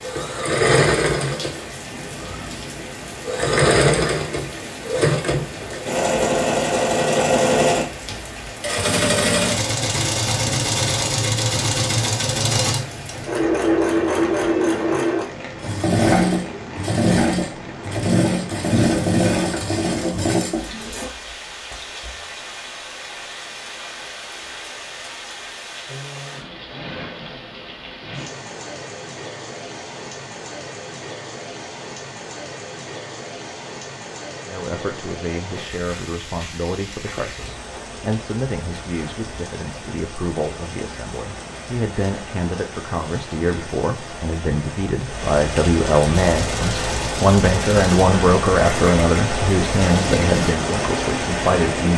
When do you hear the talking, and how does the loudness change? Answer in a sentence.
You can hear the talking from 34.5 to 51.9 s, getting louder.